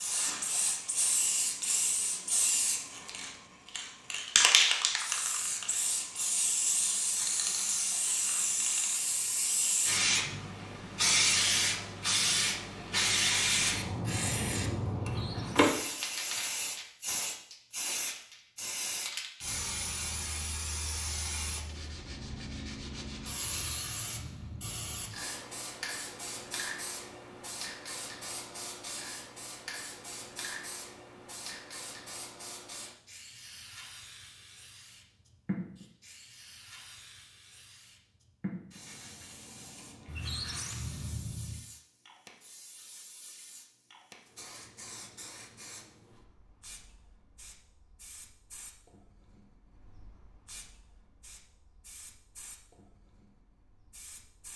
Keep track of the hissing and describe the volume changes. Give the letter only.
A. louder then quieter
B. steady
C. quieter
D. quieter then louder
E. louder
C.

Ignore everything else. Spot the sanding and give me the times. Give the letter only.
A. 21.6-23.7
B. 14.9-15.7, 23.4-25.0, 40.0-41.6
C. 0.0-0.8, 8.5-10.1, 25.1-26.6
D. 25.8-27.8
A.